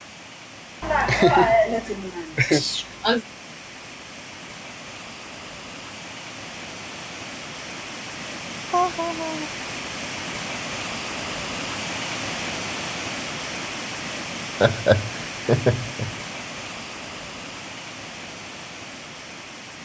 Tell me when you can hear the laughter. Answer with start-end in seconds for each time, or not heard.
0.8-3.2, 8.7-9.5, 14.6-16.1.